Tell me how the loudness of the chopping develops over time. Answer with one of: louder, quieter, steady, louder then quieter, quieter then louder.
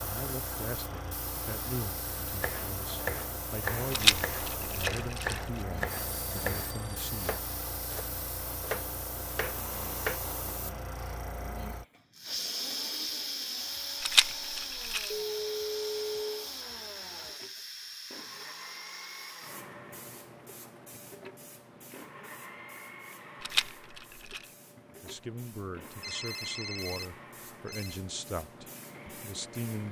quieter then louder.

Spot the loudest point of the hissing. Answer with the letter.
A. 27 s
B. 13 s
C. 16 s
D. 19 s
B.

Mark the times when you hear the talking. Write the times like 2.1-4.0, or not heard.
0.0-7.4, 25.0-29.8.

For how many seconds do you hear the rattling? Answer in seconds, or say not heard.
4 s.